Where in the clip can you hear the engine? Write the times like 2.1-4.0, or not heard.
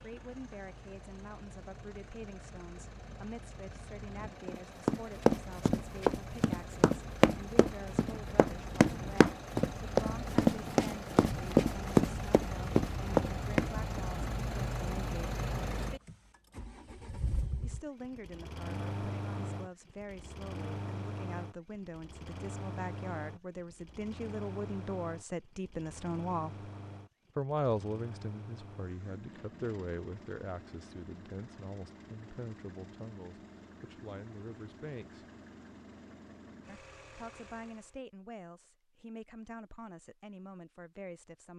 0.0-38.0.